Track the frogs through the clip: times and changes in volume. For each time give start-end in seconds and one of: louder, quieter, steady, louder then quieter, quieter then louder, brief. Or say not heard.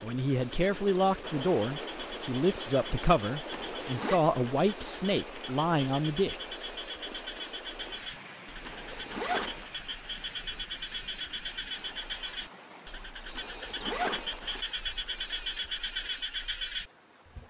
0.0-17.4 louder.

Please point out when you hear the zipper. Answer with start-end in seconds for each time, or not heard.
3.5-4.2, 8.6-9.8, 13.3-14.7.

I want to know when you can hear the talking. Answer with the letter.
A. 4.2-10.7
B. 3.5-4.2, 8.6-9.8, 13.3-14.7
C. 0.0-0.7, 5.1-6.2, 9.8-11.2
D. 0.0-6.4
D.